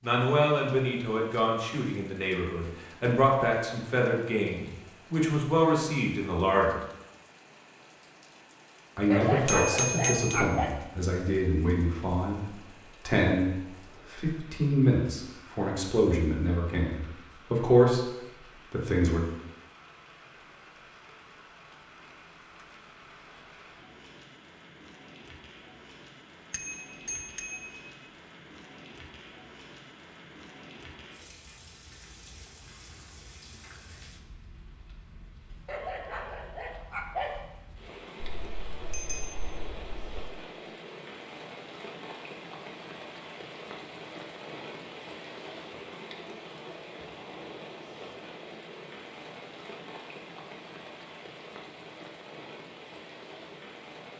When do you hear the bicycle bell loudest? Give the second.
10 s.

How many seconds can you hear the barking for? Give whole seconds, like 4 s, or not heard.
3 s.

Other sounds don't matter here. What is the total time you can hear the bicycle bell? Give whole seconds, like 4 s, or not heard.
5 s.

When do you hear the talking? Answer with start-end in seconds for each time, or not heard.
0.0-6.8, 8.9-18.1, 18.7-19.2.